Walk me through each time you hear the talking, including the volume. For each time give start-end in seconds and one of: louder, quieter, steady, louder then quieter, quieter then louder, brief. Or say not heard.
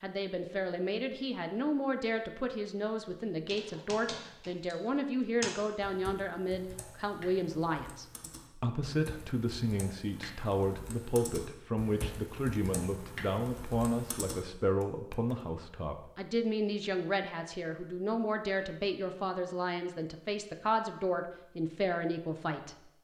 0.0-22.9 steady.